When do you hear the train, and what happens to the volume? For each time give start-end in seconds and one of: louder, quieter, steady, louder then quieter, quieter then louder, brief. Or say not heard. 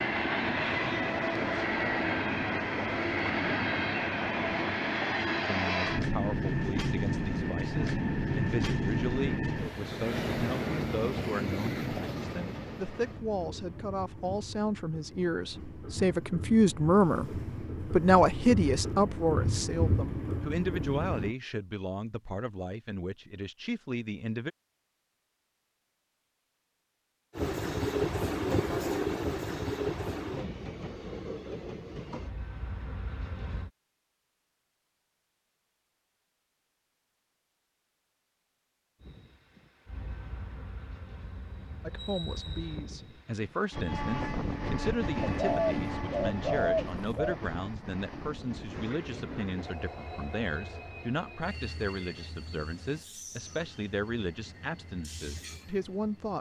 0.0-21.4 quieter then louder
27.4-33.7 quieter
39.0-56.3 louder then quieter.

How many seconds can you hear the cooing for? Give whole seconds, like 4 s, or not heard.
2 s.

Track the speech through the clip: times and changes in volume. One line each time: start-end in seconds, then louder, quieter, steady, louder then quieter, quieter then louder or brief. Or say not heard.
5.5-24.5 louder then quieter
41.9-56.3 steady.